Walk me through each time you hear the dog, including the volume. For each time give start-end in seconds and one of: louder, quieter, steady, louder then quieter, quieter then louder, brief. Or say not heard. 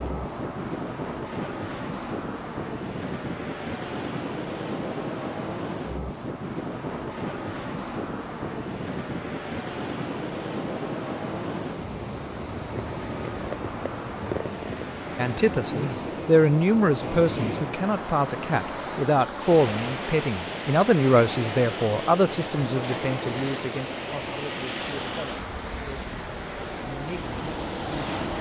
not heard.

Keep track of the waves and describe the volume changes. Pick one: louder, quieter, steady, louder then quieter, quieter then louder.
steady.